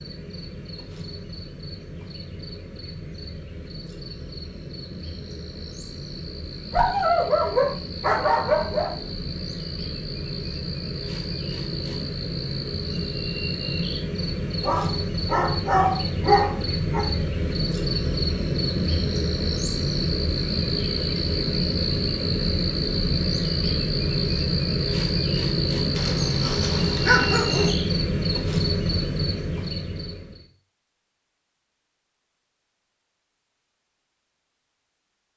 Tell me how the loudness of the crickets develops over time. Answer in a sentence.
The loudness of the crickets goes up.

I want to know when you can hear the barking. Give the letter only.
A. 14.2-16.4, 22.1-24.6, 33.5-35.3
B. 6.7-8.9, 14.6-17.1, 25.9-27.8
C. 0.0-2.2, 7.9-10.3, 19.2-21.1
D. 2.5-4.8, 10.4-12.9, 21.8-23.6
B.